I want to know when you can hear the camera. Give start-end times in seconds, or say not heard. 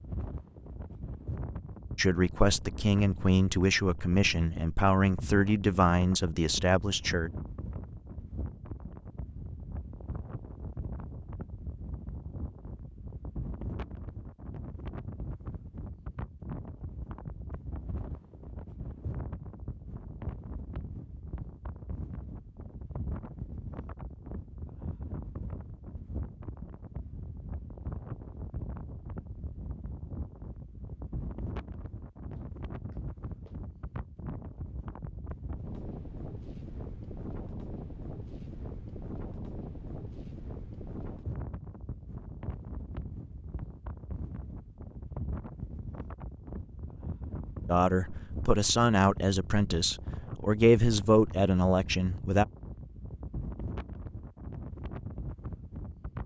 not heard.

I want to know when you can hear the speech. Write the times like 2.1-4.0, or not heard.
1.9-7.3, 47.6-52.5.